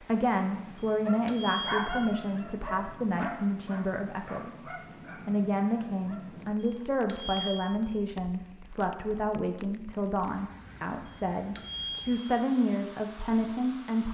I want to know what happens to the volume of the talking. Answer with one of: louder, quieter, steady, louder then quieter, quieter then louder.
steady.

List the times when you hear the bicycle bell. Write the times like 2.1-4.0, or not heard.
0.8-2.2, 6.6-7.8, 11.1-12.3.